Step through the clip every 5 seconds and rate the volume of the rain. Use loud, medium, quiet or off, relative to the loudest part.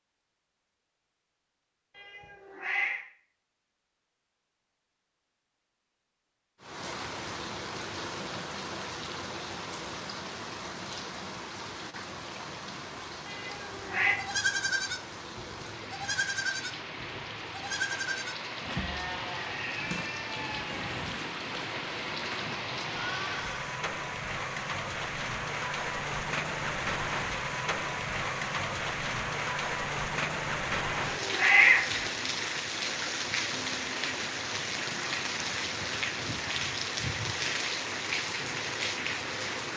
off, medium, medium, medium, loud, loud, loud, loud.